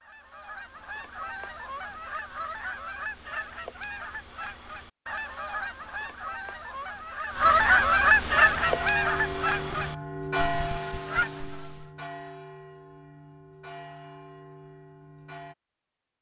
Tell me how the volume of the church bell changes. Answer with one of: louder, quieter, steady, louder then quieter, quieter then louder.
quieter.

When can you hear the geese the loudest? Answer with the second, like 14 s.
8 s.